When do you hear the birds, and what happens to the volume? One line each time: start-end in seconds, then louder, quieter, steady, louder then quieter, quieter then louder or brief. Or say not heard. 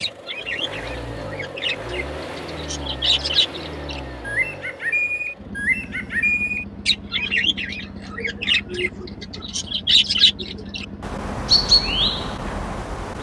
0.0-13.1 louder.